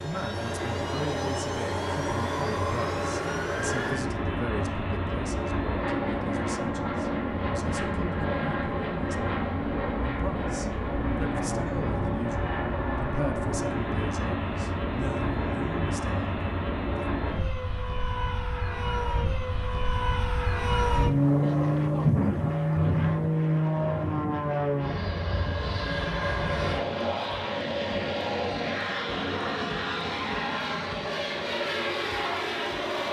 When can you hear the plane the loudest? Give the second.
22 s.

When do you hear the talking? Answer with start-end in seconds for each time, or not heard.
0.0-17.1.